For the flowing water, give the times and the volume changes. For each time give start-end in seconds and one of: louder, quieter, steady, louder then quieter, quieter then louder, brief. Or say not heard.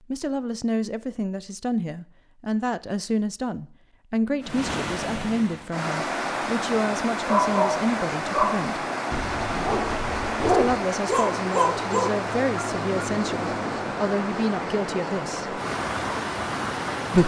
4.4-17.2 steady.